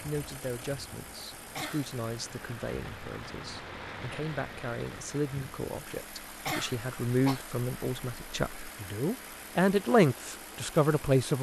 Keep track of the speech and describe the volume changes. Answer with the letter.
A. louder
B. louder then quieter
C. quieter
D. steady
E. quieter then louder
A.